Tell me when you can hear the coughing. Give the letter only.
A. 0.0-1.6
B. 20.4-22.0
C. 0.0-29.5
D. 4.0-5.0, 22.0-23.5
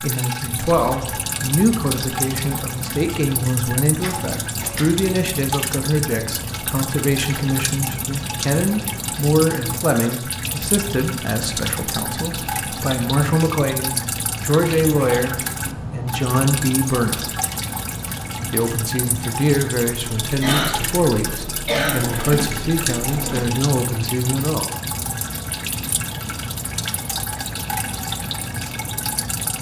B.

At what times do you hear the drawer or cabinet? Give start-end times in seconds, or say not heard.
4.0-5.0, 22.0-23.5.